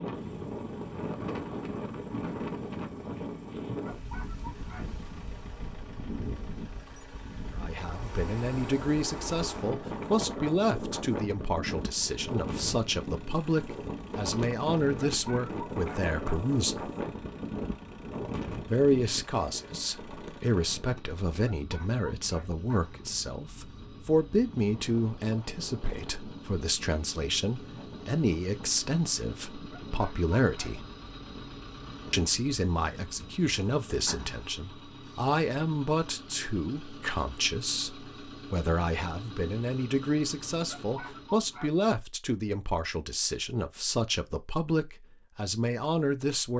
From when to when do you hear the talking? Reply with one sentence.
You can hear the talking from 7.5 to 16.9 s, from 18.6 to 30.9 s and from 32.1 to 46.5 s.